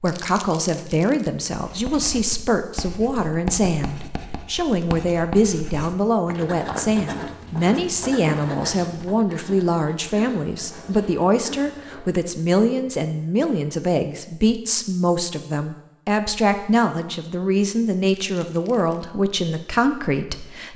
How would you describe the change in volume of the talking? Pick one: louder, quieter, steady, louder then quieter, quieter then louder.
steady.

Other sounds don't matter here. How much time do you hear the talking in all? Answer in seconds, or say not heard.
21 s.